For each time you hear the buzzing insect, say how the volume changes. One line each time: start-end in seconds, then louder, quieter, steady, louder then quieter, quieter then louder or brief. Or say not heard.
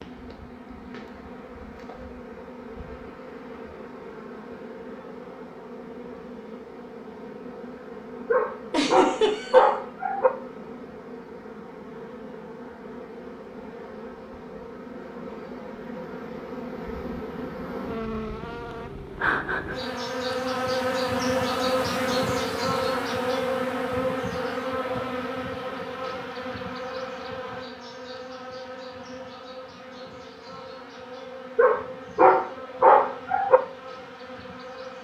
0.0-35.0 louder then quieter.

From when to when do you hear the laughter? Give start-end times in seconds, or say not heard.
8.7-9.7.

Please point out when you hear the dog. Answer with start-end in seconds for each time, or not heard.
8.3-10.3, 31.6-33.6.